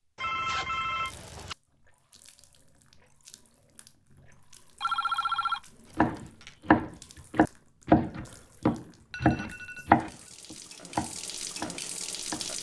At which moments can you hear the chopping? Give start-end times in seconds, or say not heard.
6.0-12.5.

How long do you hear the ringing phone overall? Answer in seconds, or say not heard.
4 s.